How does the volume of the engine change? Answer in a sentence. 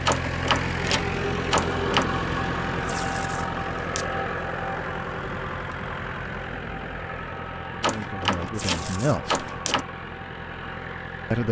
The loudness of the engine goes down.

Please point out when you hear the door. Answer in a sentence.
The door can be heard from 0.1 to 2.0 s and from 7.8 to 9.8 s.